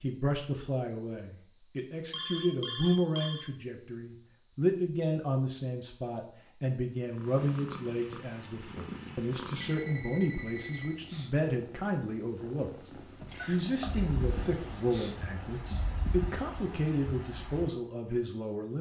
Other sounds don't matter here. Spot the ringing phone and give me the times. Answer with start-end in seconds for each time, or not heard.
2.1-3.5, 9.6-11.0, 13.3-14.1.